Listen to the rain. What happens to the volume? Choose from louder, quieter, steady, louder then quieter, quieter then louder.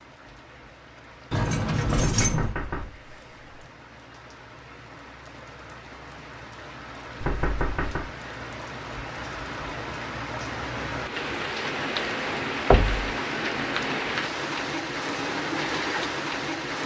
louder.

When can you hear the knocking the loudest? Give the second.
13 s.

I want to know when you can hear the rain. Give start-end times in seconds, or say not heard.
0.0-16.8.